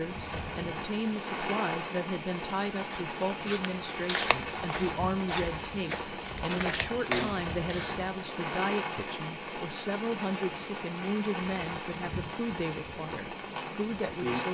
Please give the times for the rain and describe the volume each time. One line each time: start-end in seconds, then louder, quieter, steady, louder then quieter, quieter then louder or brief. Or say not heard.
0.0-14.4 steady.